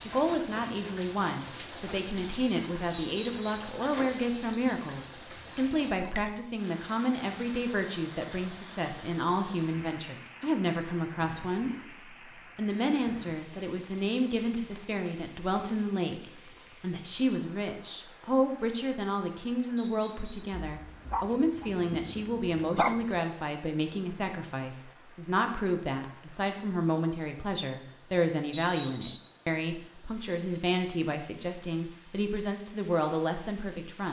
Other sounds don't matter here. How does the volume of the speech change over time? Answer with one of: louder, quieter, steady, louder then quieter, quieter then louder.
steady.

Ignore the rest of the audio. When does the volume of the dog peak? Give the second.
23 s.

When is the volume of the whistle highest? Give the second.
29 s.